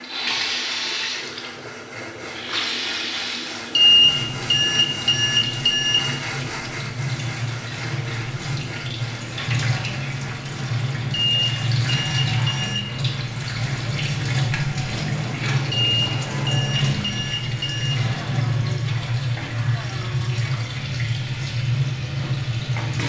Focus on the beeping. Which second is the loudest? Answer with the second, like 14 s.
4 s.